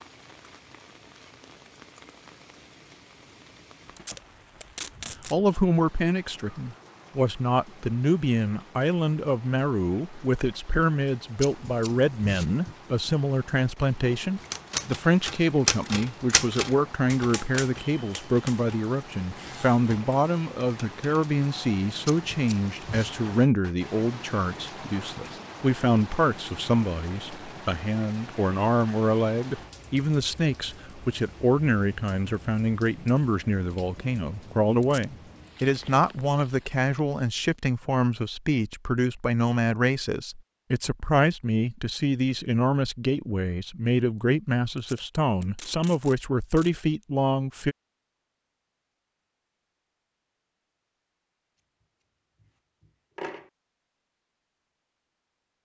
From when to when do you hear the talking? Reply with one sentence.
You can hear the talking from 5.3 to 47.8 s.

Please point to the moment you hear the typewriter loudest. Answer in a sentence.
The loudest moment of the typewriter is at 16 seconds.